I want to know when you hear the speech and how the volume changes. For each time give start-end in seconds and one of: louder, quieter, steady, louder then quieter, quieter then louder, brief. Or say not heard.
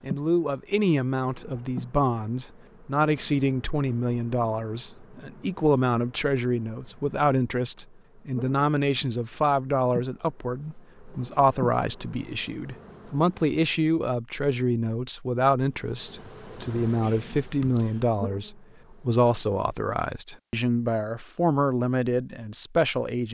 0.0-23.2 steady.